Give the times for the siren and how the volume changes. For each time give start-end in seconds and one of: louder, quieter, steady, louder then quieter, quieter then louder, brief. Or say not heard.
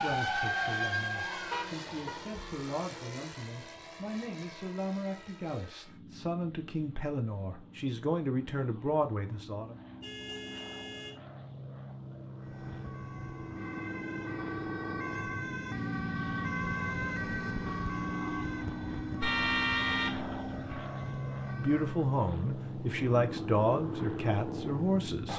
0.0-2.8 brief
12.3-22.1 louder then quieter.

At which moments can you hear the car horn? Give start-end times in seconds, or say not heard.
1.5-2.2, 10.0-11.2, 19.2-20.9.